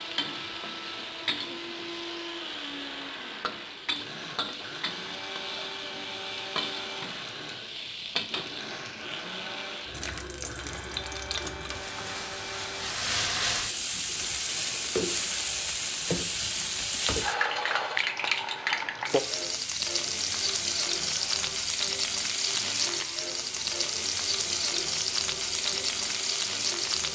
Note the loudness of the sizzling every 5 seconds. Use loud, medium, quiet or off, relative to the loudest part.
medium, medium, loud, loud, loud, loud.